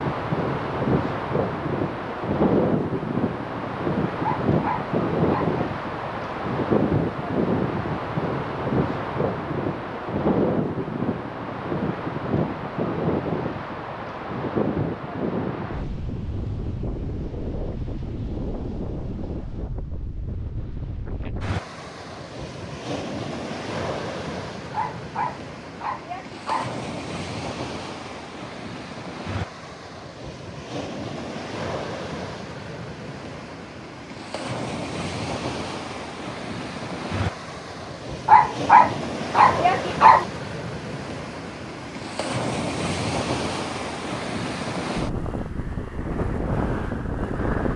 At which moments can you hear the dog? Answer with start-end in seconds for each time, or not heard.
4.2-5.5, 24.7-26.7, 38.2-40.2.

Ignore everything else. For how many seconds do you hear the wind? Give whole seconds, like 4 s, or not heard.
48 s.